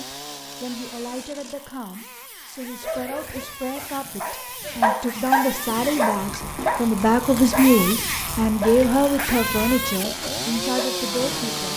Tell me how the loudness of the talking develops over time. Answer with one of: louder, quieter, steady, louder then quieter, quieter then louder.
louder then quieter.